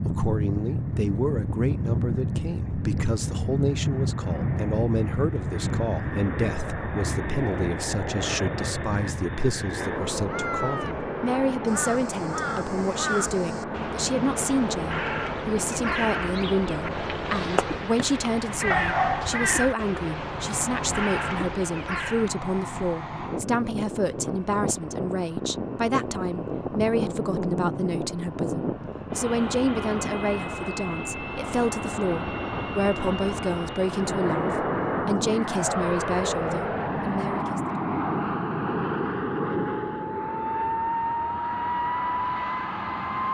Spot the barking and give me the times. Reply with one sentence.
The barking can be heard from 18.7 to 19.4 s.